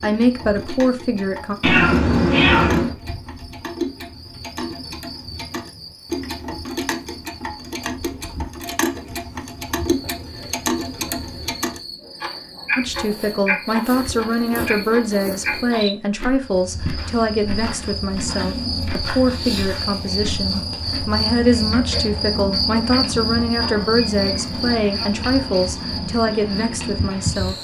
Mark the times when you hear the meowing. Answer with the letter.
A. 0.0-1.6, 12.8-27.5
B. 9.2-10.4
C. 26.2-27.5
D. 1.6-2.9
D.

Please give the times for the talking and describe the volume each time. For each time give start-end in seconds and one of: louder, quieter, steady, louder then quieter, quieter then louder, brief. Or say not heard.
0.0-1.6 brief
12.8-27.5 steady.